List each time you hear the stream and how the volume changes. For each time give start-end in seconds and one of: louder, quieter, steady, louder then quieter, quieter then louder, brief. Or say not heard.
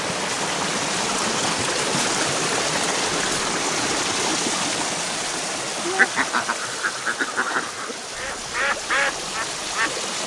0.0-10.2 quieter.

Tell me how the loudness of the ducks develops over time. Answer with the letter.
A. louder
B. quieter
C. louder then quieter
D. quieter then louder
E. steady
D.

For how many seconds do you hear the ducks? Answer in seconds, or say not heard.
4 s.